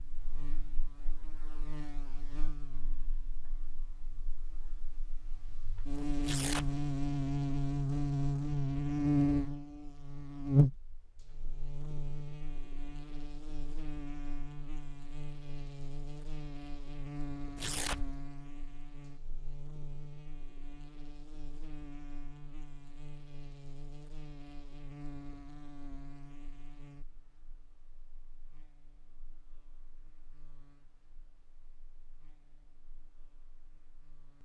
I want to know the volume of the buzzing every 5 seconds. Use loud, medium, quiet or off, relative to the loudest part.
quiet, loud, loud, quiet, quiet, quiet, quiet.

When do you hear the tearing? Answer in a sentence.
You can hear the tearing from 6.2 to 6.8 s and from 17.6 to 18.2 s.